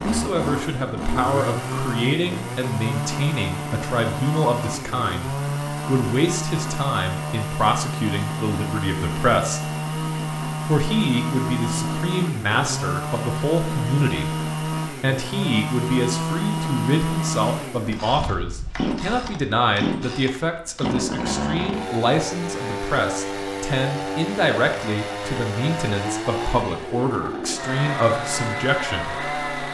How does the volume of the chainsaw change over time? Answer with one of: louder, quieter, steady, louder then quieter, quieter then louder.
steady.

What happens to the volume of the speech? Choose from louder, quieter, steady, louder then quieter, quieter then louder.
steady.